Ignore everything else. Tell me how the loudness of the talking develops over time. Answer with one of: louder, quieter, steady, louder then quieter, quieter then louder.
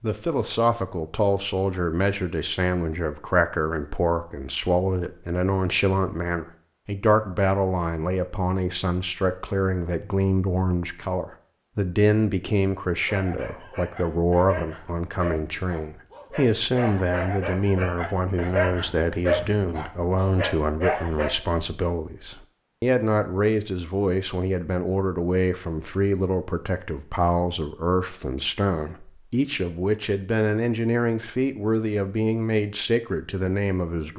steady.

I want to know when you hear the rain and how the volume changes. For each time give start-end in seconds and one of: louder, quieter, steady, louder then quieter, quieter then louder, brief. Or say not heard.
not heard.